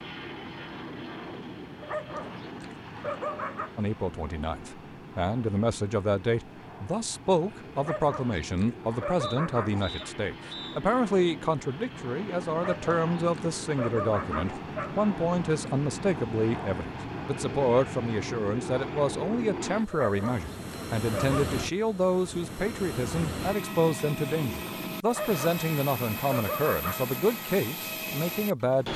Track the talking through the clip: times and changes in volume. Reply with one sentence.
The talking can be heard from 3.8 to 28.9 s, at a steady volume.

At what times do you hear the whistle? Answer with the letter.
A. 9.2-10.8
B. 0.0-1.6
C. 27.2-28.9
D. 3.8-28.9
A.